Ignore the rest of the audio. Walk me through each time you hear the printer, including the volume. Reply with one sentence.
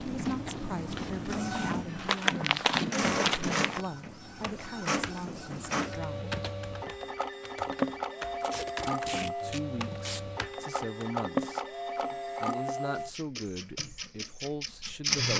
You can hear the printer from 0.0 to 15.3 s, at a steady volume.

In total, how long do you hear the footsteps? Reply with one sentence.
You can hear the footsteps for 4 seconds altogether.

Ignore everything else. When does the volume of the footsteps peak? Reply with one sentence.
The volume of the footsteps peaks at 3 seconds.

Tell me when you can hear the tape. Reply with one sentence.
The tape can be heard from 0.8 to 2.7 s and from 8.4 to 10.2 s.